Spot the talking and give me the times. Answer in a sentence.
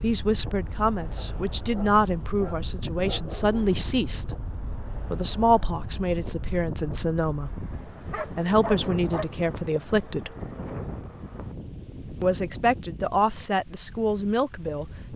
The talking can be heard from 0.0 to 4.3 s, from 5.1 to 10.3 s and from 12.2 to 15.1 s.